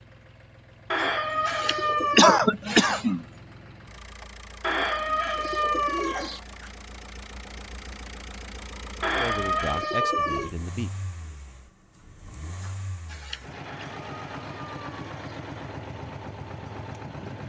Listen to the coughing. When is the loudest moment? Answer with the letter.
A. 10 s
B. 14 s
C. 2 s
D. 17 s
C.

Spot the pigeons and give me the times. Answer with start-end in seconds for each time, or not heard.
0.9-2.5, 4.6-6.4, 9.0-10.5, 13.7-15.2.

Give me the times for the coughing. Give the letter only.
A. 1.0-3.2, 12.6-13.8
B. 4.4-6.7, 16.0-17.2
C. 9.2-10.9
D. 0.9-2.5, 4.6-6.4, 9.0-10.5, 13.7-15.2
A.